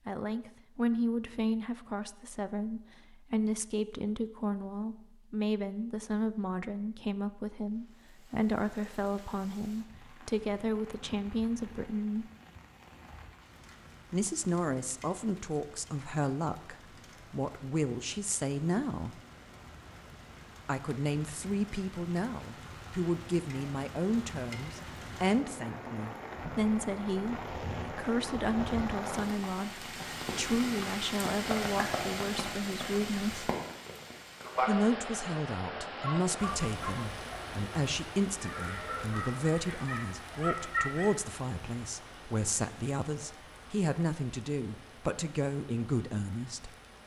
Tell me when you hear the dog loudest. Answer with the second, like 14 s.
41 s.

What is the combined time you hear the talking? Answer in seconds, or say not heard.
42 s.